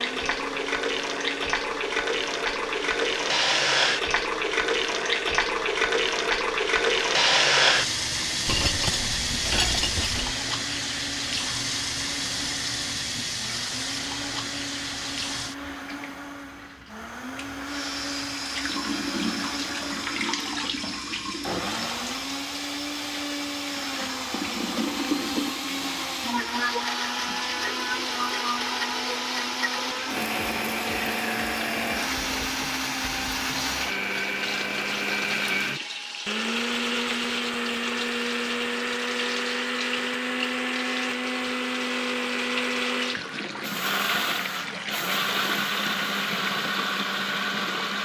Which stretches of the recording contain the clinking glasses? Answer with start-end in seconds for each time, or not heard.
8.4-10.3.